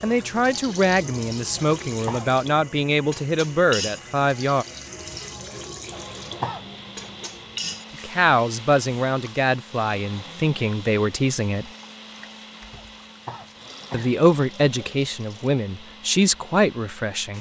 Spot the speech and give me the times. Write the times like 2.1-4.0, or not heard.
0.0-4.7, 8.0-11.7, 13.9-17.3.